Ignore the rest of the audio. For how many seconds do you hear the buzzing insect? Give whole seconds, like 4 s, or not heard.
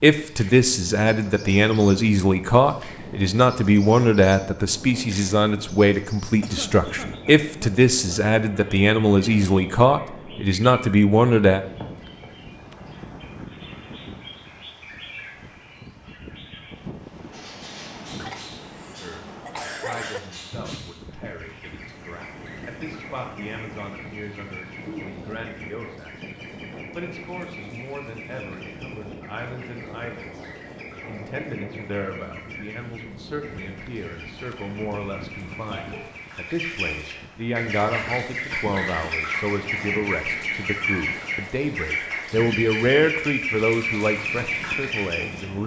not heard.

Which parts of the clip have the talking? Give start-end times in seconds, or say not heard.
0.0-11.6, 19.0-45.6.